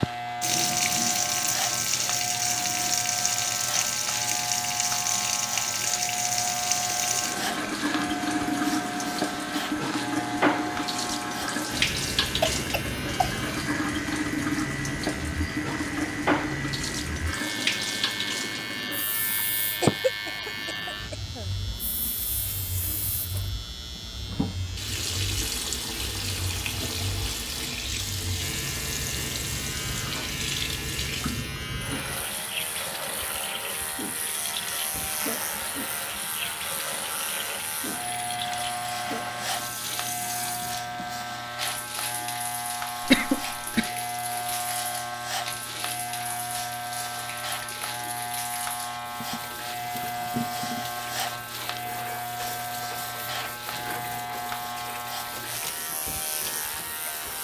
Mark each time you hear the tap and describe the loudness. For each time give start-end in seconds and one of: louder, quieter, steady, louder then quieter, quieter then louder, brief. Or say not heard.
0.0-57.3 quieter.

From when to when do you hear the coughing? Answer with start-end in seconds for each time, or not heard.
12.4-13.3, 19.8-21.4, 43.0-43.9.